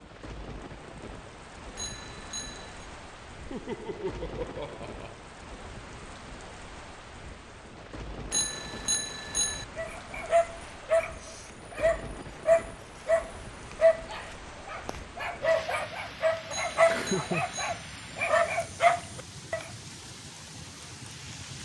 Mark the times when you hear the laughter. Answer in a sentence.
The laughter can be heard from 3.5 to 5.2 s and from 16.8 to 17.4 s.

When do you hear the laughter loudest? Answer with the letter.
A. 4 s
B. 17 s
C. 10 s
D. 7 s
B.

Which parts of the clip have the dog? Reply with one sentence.
You can hear the dog from 9.8 to 19.7 s.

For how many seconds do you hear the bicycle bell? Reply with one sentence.
You can hear the bicycle bell for 4 seconds altogether.